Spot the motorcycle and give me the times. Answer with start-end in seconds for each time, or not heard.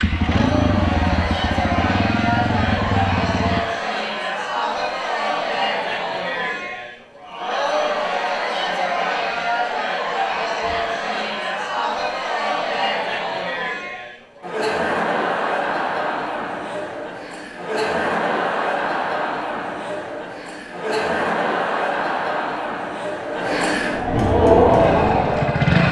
0.0-3.6, 24.6-25.8.